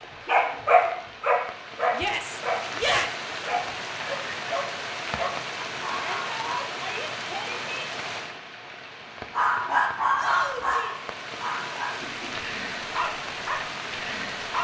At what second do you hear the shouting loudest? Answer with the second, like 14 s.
3 s.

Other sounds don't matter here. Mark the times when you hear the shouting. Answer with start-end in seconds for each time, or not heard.
1.9-3.1, 5.9-7.8, 10.2-11.0.